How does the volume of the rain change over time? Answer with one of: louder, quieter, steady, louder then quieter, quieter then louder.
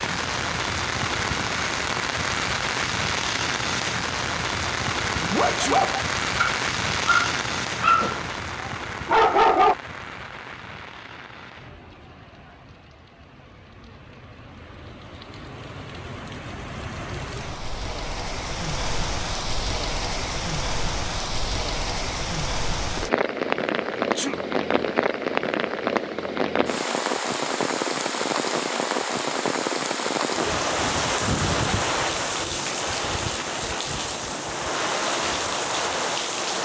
quieter then louder.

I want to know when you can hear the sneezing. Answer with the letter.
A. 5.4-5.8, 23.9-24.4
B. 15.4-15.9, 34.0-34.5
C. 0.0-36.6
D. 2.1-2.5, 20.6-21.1
A.